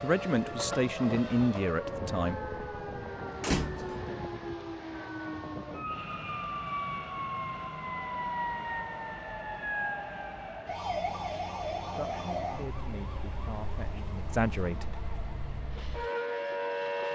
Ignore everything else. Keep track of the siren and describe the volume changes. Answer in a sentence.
The volume of the siren stays about the same.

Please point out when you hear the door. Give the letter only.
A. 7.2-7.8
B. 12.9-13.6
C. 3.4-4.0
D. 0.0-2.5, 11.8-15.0
C.